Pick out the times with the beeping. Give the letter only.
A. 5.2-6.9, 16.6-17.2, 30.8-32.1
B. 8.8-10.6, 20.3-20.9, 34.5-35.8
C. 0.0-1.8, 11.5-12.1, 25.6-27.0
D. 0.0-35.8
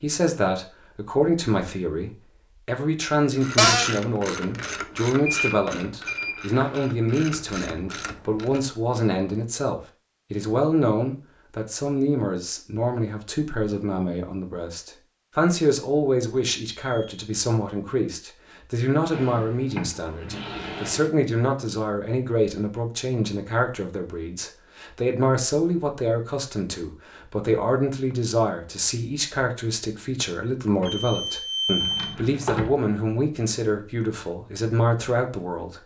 A.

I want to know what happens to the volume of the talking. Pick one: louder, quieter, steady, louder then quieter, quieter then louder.
steady.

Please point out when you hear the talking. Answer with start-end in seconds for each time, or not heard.
0.0-35.8.